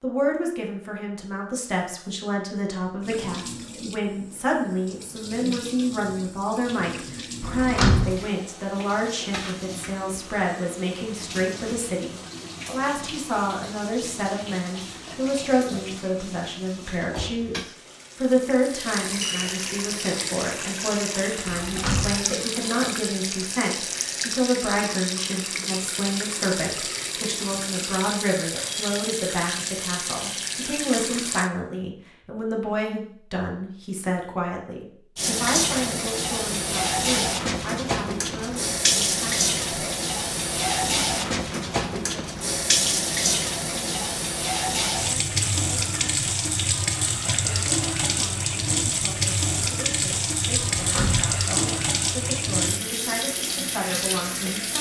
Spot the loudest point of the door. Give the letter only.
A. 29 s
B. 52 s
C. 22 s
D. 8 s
D.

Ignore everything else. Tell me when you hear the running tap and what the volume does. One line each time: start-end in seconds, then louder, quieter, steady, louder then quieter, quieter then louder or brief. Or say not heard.
3.0-31.5 louder
35.1-54.7 steady.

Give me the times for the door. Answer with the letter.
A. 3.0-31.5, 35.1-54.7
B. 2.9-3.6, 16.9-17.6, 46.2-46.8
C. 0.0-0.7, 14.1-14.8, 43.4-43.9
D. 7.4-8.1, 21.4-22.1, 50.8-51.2
D.